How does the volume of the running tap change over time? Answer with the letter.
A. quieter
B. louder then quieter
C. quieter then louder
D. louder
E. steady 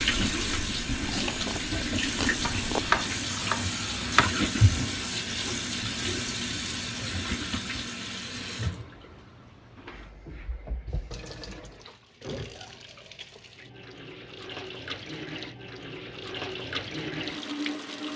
C.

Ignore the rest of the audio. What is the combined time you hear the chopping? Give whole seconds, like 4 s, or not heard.
2 s.